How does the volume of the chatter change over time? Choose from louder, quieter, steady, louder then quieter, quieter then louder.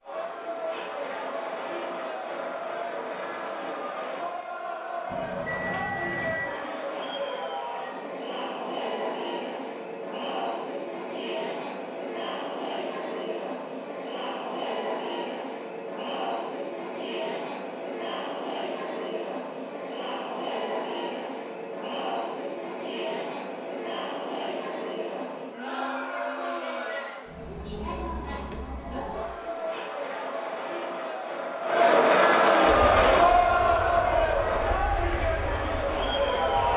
louder.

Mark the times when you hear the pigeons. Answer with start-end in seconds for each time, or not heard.
not heard.